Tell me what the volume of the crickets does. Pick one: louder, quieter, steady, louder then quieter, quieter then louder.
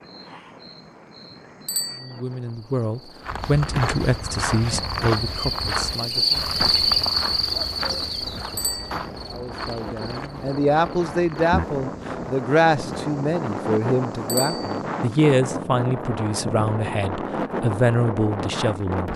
louder then quieter.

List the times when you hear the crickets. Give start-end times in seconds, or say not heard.
0.0-15.2.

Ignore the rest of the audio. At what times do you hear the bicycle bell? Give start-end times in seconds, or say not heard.
1.6-2.2, 8.6-9.1, 14.2-14.8.